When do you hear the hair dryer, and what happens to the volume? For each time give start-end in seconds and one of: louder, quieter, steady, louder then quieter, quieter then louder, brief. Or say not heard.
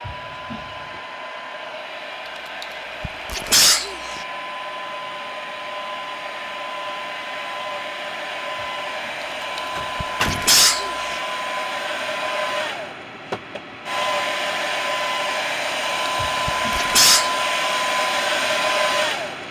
0.0-19.4 louder.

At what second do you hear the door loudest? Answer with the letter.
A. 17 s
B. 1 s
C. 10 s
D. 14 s
C.